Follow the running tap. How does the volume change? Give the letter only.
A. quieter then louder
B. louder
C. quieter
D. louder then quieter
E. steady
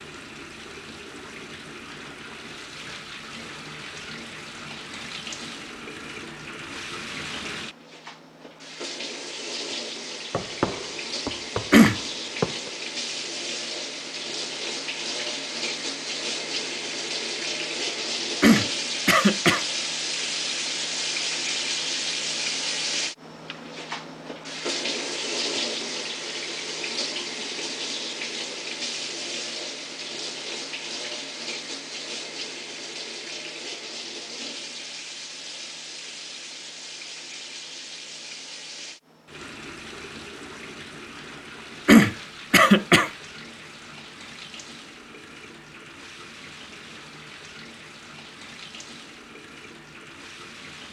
D.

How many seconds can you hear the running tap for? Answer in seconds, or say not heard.
51 s.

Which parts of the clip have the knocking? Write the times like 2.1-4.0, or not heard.
10.3-12.7.